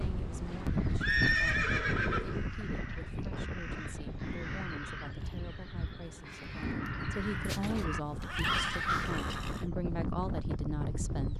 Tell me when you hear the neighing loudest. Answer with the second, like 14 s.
1 s.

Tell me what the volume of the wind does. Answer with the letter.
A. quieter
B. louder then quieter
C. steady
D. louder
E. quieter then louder
E.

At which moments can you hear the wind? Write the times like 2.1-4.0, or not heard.
0.0-11.3.